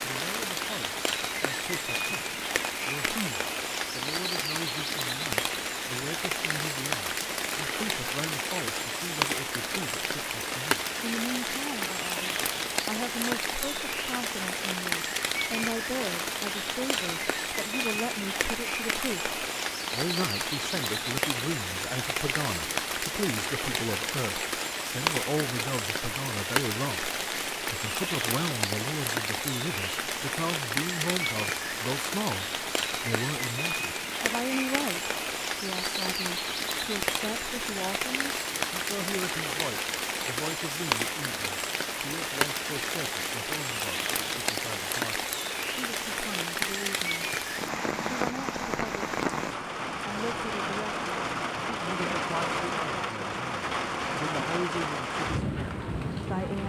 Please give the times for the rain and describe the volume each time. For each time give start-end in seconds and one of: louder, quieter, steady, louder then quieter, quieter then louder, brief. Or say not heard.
0.0-56.6 steady.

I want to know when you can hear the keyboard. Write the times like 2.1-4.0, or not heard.
not heard.